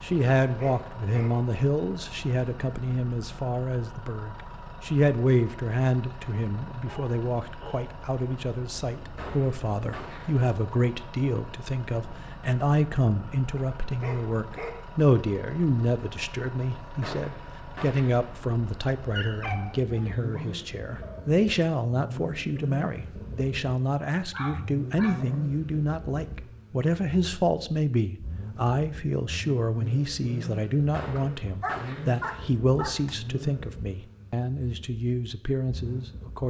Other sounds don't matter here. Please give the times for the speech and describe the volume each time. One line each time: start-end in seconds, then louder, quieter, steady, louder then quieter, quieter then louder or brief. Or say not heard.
0.0-36.4 steady.